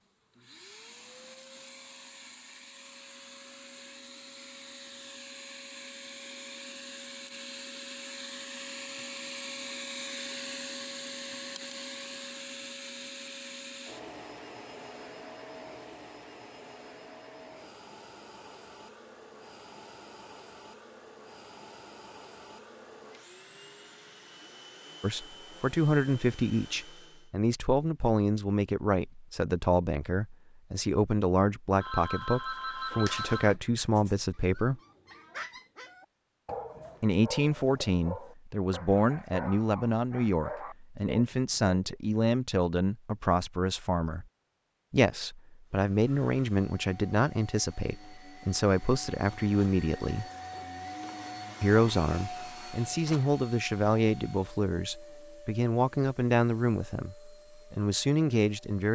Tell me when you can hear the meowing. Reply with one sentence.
The meowing can't be heard in this clip.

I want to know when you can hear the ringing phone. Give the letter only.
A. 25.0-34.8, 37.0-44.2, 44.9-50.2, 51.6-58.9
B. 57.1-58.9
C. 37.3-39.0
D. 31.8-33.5
D.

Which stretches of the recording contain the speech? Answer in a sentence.
You can hear the speech from 25.0 to 34.8 s, from 37.0 to 44.2 s, from 44.9 to 50.2 s and from 51.6 to 58.9 s.